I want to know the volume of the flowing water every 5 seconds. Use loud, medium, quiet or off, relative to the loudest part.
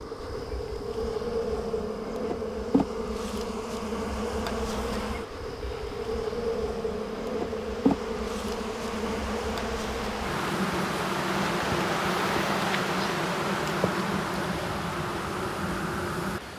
off, medium, loud, medium.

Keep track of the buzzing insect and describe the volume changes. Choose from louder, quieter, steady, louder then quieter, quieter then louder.
steady.